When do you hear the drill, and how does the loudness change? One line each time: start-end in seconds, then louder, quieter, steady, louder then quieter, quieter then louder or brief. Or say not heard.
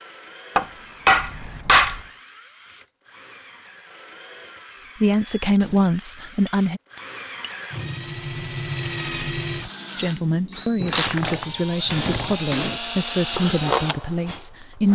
0.0-14.9 louder.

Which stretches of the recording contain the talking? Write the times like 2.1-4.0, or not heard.
4.8-6.8, 9.9-14.9.